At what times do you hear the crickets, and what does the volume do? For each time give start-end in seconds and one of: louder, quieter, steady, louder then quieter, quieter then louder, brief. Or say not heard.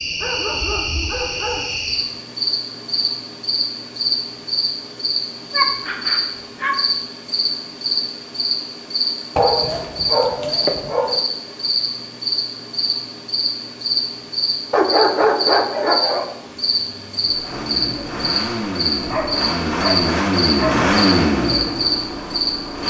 0.0-22.8 steady.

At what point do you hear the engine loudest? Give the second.
21 s.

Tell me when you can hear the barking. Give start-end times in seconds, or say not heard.
0.1-1.6, 5.5-6.8, 9.3-11.2, 14.7-16.3, 19.1-20.9.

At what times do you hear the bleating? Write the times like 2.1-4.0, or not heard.
not heard.